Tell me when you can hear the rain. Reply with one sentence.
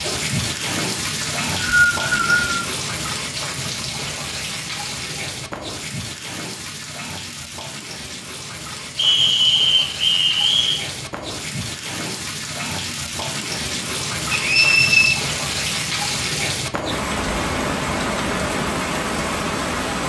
You can hear the rain from 0.0 to 20.0 s.